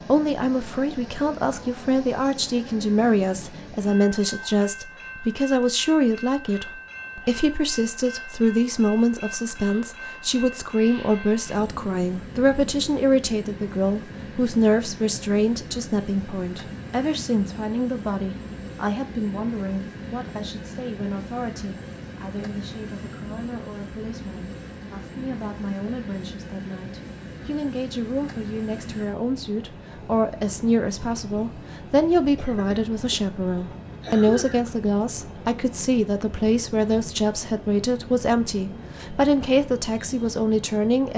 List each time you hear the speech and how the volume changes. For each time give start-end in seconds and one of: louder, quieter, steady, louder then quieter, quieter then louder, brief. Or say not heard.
0.1-41.1 quieter then louder.